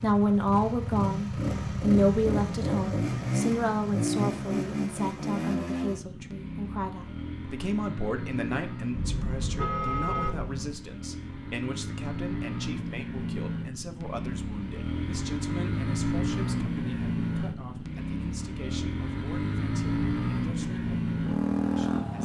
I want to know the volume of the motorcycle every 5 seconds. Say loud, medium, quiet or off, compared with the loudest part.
loud, medium, medium, loud, loud.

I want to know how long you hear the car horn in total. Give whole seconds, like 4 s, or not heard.
2 s.